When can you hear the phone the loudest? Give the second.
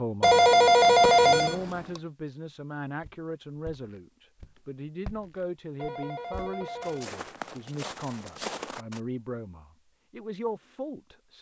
1 s.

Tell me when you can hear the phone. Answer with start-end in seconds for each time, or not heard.
0.2-2.0, 5.8-7.6.